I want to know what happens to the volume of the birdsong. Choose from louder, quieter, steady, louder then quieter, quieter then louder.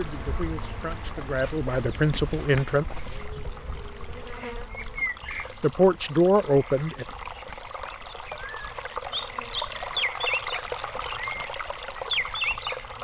louder.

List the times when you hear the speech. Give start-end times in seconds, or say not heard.
0.0-2.9, 5.6-7.0.